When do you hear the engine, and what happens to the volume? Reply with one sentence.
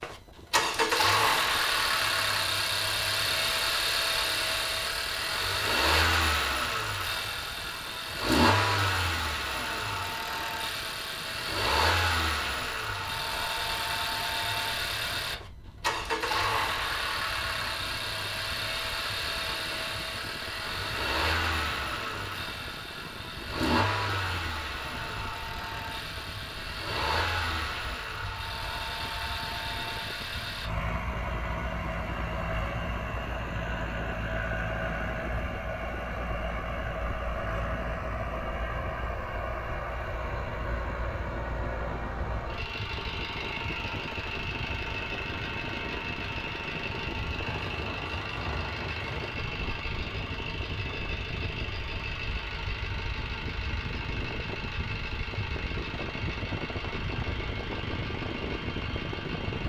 You can hear the engine from 0.0 to 59.6 s, getting quieter.